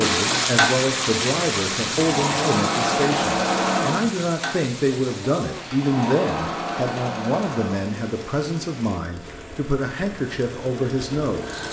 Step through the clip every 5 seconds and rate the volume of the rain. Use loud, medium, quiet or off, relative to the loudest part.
loud, quiet, quiet.